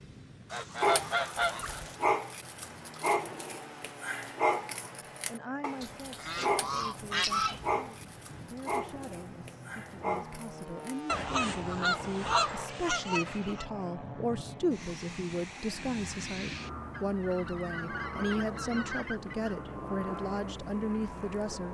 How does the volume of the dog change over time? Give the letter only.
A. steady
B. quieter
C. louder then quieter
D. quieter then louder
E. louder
B.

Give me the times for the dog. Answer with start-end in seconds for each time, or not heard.
0.8-12.7.